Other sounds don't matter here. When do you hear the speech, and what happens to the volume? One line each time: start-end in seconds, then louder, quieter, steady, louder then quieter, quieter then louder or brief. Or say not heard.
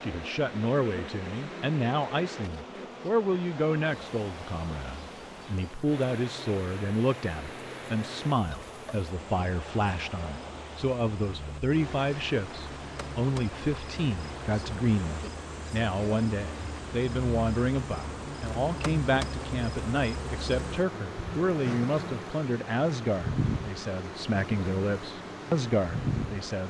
0.0-26.6 steady.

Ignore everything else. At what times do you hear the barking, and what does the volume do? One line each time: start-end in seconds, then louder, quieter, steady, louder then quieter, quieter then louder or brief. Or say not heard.
not heard.